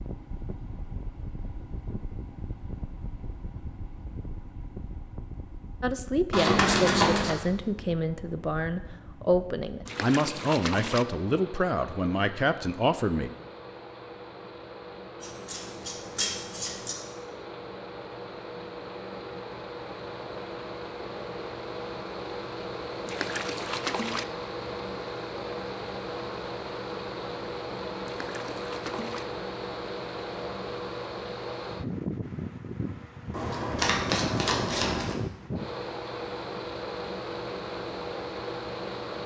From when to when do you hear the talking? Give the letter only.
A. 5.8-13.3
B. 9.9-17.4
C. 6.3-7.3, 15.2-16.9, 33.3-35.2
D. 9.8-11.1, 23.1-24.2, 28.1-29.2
A.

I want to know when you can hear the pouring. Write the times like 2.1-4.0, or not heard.
9.8-11.1, 23.1-24.2, 28.1-29.2.